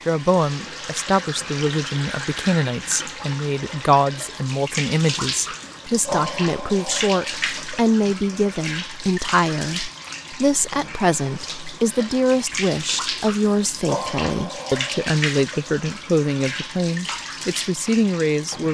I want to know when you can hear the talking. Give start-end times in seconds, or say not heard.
0.1-18.6.